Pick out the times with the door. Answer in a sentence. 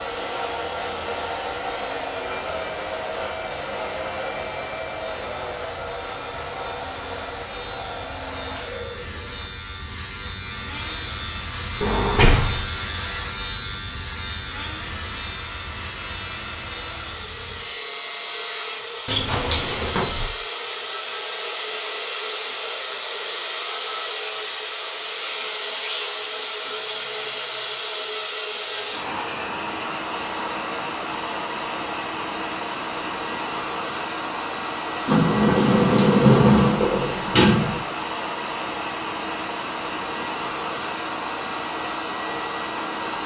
You can hear the door from 11.8 to 12.7 s, from 19.1 to 20.3 s and from 35.0 to 37.8 s.